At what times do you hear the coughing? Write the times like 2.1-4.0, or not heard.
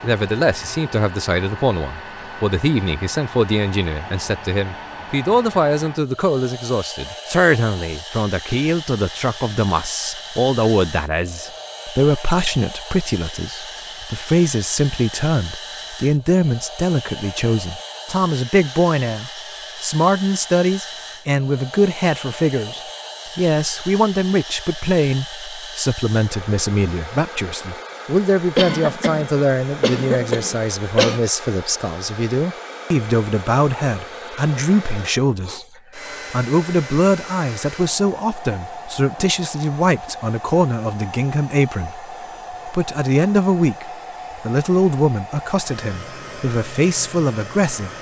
28.6-31.2.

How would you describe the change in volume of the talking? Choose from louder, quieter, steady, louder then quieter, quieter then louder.
steady.